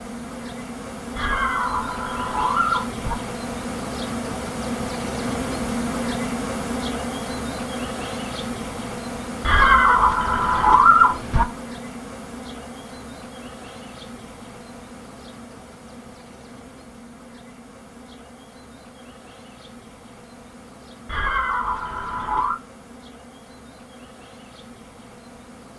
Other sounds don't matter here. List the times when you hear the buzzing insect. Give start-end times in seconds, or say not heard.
0.0-25.7.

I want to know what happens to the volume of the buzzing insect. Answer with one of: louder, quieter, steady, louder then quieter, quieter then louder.
quieter.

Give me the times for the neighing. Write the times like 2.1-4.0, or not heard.
1.1-3.1, 9.4-11.4, 21.1-22.6.